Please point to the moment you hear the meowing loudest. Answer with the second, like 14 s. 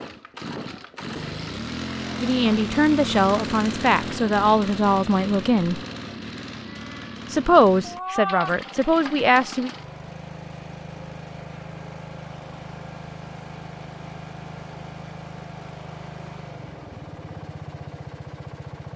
8 s.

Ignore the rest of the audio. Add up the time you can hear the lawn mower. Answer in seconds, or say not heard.
19 s.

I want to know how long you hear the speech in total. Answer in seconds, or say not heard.
6 s.